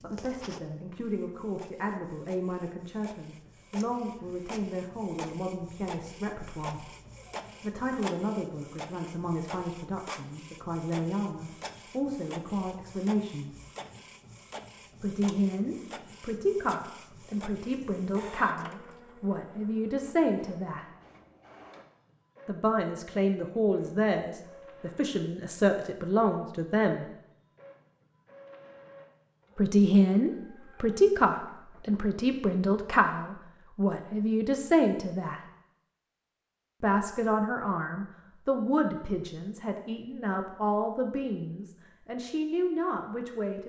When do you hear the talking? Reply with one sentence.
You can hear the talking from 0.0 to 6.9 s, from 7.6 to 13.6 s, from 15.0 to 20.9 s, from 22.4 to 27.1 s, from 29.6 to 35.4 s and from 36.8 to 43.6 s.